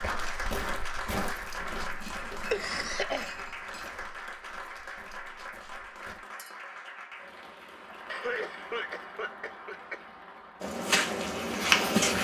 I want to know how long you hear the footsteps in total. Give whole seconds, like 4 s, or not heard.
8 s.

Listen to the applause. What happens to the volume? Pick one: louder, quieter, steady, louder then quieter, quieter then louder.
quieter.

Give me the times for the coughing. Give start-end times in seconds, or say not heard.
2.2-3.8, 8.1-10.1.